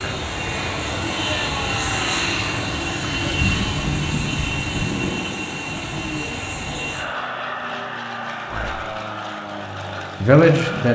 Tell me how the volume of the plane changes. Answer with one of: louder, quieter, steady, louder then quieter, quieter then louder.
quieter.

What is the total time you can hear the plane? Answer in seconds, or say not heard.
11 s.